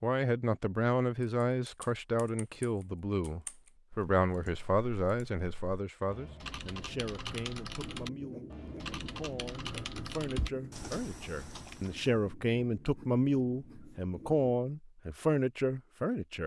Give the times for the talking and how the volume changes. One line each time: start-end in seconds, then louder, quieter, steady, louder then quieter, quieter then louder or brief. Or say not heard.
0.0-16.4 quieter then louder.